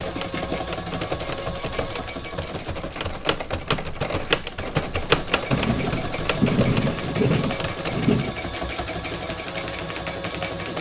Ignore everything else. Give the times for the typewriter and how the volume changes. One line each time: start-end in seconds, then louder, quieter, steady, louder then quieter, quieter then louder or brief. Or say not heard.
0.0-10.7 louder then quieter.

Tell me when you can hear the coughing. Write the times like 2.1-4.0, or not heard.
not heard.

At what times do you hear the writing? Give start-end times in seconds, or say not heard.
5.5-8.3.